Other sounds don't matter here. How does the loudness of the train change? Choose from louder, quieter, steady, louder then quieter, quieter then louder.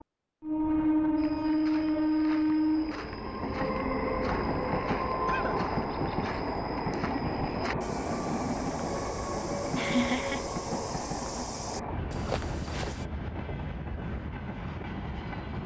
quieter.